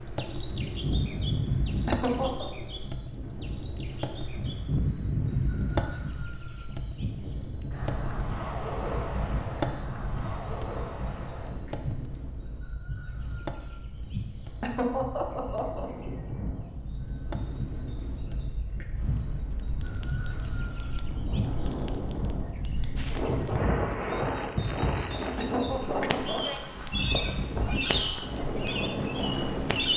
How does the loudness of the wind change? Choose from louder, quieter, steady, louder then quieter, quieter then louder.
quieter then louder.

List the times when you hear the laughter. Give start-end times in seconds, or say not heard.
1.9-2.5, 14.6-15.9, 25.4-26.6.